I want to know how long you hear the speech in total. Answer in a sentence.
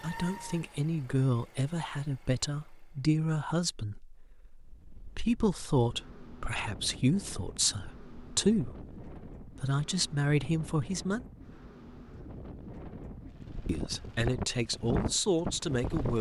You can hear the speech for 14 seconds altogether.